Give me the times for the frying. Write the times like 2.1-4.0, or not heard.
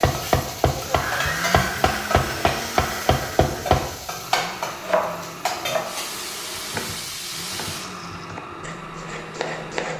0.0-8.2.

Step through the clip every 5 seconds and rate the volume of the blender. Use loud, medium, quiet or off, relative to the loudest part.
loud, medium.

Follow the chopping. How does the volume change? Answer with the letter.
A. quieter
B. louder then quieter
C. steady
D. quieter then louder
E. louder
D.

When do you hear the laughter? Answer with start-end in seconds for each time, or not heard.
not heard.